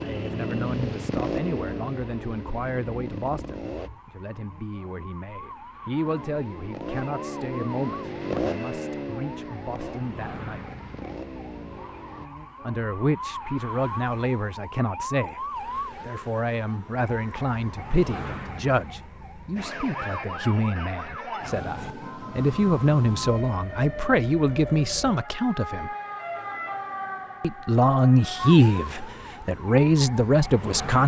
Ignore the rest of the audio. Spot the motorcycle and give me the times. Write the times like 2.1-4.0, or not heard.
0.0-3.9, 6.0-12.3.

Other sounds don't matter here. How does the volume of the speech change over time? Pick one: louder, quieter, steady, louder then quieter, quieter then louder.
louder.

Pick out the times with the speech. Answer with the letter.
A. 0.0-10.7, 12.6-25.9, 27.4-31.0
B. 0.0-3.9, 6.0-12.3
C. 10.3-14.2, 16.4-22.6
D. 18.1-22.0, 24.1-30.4
A.